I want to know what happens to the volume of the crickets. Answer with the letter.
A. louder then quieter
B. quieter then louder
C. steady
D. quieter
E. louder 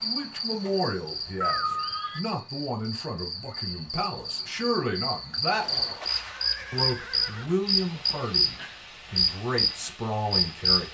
E.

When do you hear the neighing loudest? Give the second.
2 s.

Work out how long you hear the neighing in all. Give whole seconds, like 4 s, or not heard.
3 s.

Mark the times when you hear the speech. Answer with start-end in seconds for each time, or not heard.
0.0-5.8, 6.7-10.8.